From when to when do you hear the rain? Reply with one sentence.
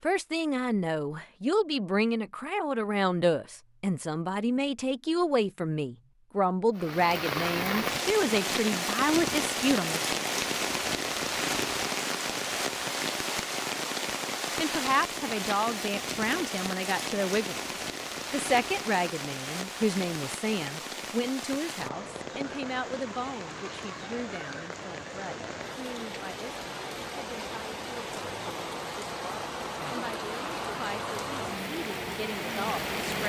You can hear the rain from 6.8 to 33.2 s.